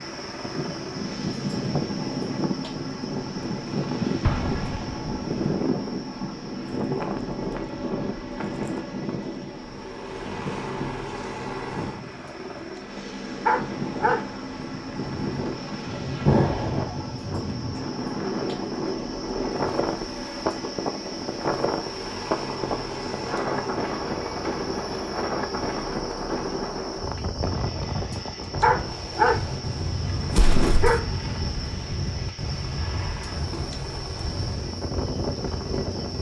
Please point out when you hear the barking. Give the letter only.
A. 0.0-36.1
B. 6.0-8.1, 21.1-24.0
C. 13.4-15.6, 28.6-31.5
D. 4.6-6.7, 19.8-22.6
C.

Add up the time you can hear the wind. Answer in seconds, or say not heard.
36 s.